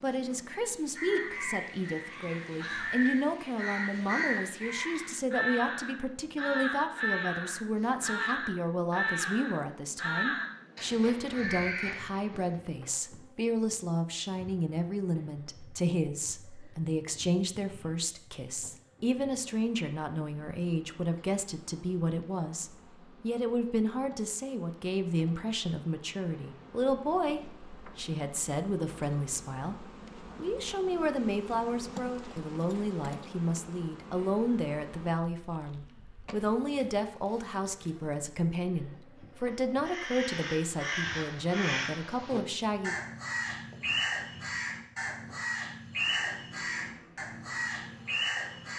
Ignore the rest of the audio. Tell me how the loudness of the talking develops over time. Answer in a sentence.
The volume of the talking stays about the same.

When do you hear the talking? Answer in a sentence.
The talking can be heard from 0.0 to 43.0 s.